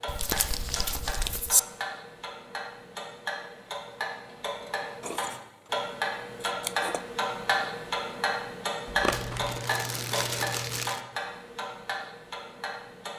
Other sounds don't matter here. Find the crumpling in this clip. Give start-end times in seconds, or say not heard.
0.1-1.6, 9.1-11.0.